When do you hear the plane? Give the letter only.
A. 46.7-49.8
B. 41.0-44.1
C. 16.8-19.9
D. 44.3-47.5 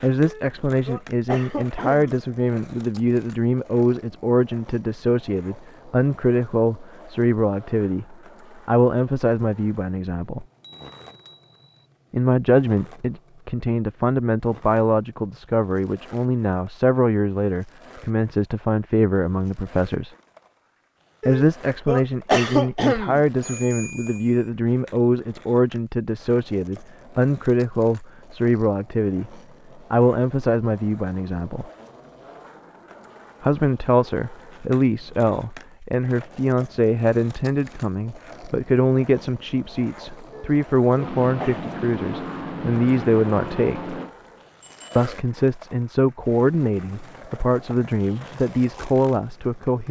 B.